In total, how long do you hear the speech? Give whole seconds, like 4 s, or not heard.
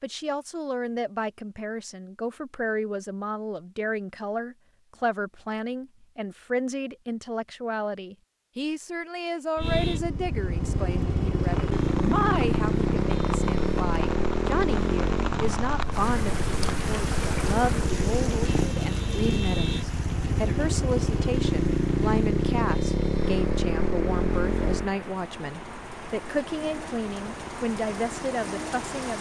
29 s.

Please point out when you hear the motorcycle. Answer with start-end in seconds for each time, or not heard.
9.6-29.1.